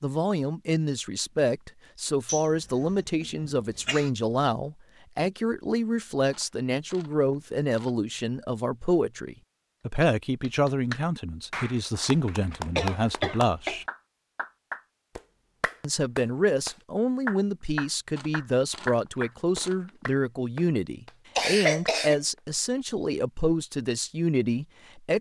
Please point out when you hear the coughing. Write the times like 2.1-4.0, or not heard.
2.2-4.1, 12.5-13.8, 21.4-22.2.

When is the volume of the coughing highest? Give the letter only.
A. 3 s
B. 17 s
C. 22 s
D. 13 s
C.